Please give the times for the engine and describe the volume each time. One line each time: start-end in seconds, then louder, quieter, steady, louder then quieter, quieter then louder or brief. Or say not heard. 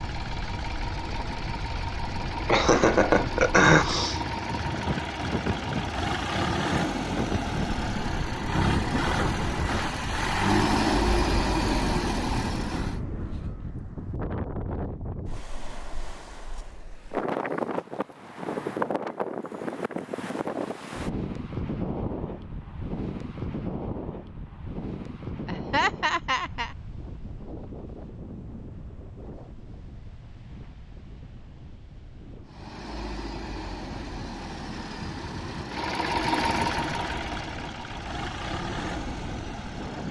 0.0-13.0 louder
32.5-40.0 louder then quieter.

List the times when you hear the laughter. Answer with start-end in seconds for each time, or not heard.
2.5-4.2, 25.4-26.8.